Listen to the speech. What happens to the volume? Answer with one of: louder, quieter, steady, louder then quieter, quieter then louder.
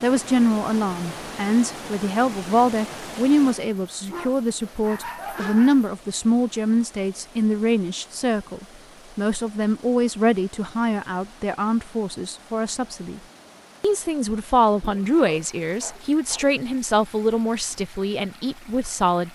steady.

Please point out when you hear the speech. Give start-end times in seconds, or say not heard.
0.0-13.2, 13.8-19.2.